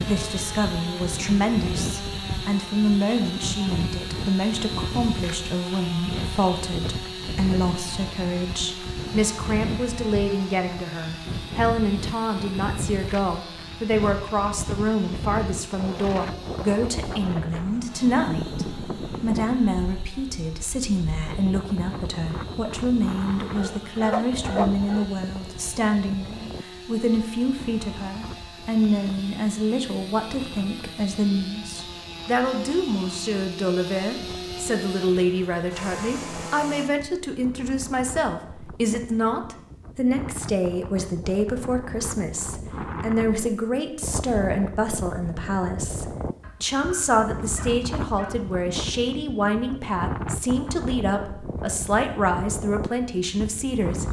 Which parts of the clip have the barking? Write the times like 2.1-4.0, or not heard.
23.6-25.2, 46.4-48.5.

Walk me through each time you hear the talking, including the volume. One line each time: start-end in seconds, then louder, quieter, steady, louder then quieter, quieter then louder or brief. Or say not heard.
0.0-54.0 steady.